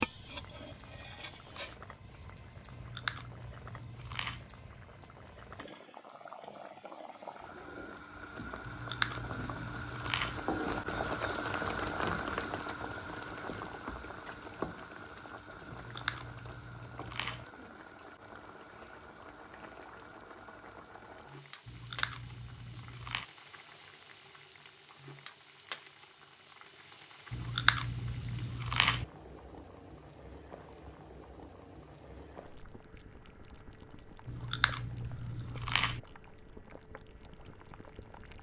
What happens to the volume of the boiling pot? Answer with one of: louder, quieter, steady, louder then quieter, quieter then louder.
louder then quieter.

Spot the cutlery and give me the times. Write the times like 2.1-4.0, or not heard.
0.0-1.8.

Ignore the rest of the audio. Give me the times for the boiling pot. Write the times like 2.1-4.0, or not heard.
0.0-38.3.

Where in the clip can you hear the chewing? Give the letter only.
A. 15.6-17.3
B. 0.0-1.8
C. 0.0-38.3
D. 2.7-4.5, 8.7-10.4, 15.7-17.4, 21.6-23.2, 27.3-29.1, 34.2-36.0
D.